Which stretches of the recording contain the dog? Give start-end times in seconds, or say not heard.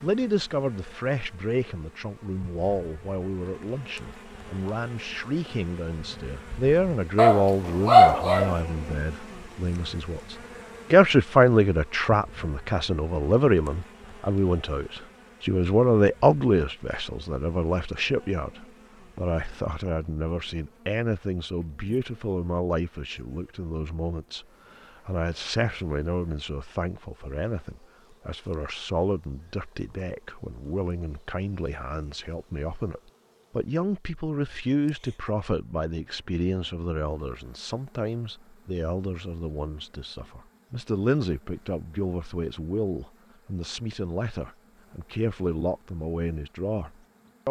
7.2-8.6.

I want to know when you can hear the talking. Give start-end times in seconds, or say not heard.
0.0-47.4.